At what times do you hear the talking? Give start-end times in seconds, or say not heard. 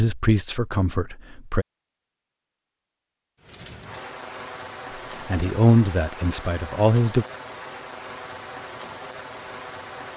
0.0-1.6, 5.2-7.2.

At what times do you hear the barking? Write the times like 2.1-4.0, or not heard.
not heard.